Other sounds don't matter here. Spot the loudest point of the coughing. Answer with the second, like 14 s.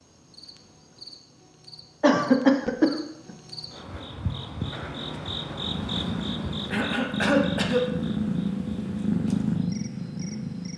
2 s.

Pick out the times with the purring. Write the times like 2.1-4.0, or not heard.
5.5-10.7.